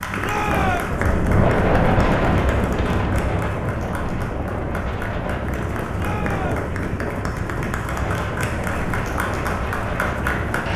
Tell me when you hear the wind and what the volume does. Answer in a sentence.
You can hear the wind from 0.0 to 10.7 s, getting quieter.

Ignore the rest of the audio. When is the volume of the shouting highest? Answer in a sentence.
The loudest moment of the shouting is at 1 second.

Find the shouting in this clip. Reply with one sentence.
The shouting can be heard from 0.2 to 1.0 s and from 6.0 to 6.7 s.